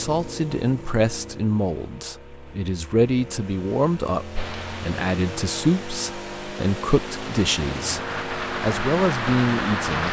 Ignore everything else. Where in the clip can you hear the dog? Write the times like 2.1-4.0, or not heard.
not heard.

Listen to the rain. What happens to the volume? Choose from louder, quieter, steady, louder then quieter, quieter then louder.
louder.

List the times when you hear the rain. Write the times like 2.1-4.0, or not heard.
4.3-10.0.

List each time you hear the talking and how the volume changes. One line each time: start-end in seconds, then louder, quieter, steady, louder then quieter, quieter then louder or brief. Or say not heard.
0.0-10.0 steady.